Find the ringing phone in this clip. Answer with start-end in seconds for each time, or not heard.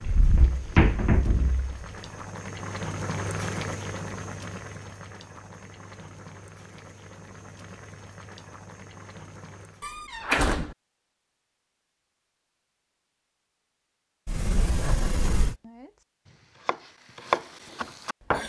not heard.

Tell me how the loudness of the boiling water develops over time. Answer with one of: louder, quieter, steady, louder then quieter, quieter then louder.
louder then quieter.